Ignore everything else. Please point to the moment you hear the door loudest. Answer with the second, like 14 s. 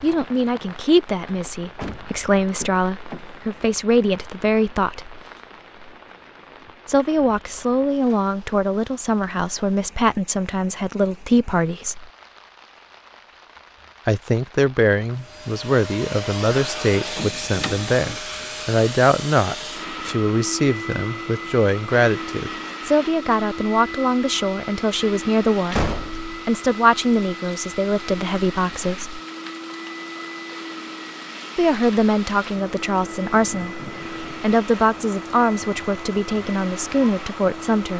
26 s.